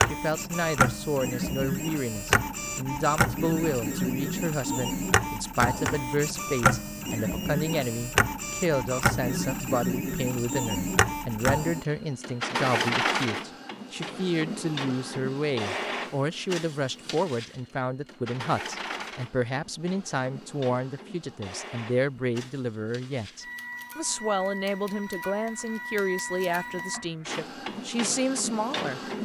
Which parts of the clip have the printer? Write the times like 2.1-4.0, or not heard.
0.0-29.2.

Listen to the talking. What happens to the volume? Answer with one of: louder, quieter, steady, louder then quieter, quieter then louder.
steady.